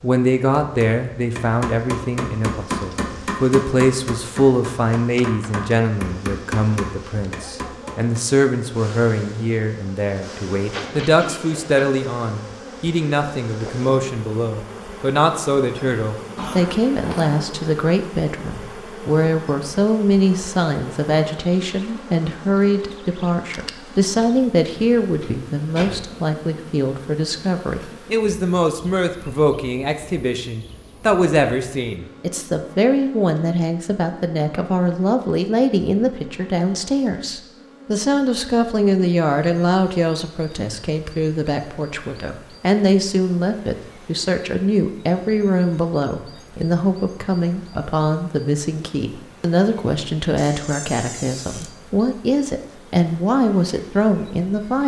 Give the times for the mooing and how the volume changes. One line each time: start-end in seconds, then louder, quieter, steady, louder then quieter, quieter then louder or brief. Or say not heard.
not heard.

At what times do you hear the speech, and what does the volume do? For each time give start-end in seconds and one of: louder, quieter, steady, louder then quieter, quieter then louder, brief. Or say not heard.
0.0-54.8 steady.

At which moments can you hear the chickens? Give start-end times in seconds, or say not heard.
not heard.